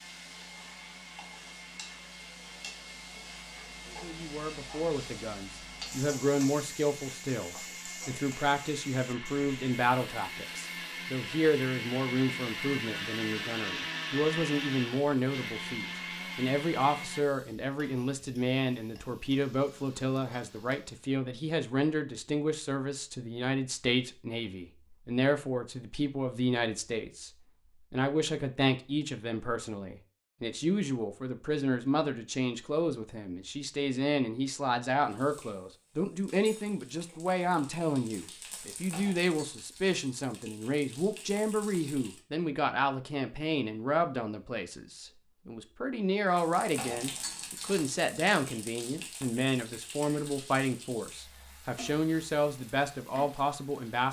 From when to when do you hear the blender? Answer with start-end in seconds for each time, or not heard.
0.0-17.2.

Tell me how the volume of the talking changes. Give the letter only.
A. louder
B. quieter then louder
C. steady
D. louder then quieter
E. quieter
C.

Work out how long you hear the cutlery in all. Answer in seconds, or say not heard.
not heard.